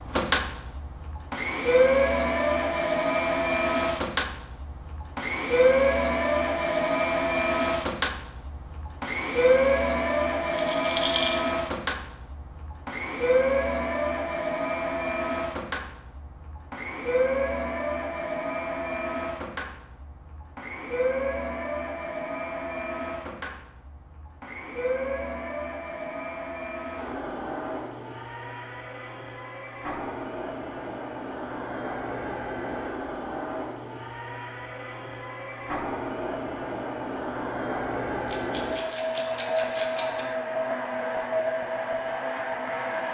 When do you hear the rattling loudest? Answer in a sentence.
The volume of the rattling peaks at 11 seconds.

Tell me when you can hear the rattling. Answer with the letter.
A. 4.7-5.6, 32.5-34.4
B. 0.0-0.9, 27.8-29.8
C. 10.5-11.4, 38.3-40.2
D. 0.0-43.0
C.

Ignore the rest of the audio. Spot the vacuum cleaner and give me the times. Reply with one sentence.
The vacuum cleaner can be heard from 0.0 to 43.0 s.